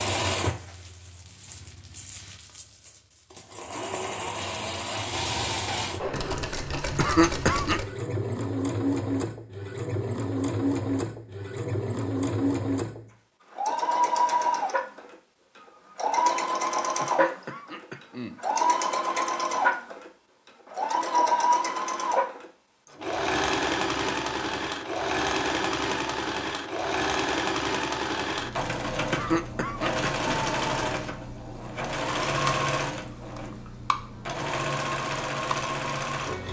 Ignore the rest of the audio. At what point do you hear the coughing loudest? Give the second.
7 s.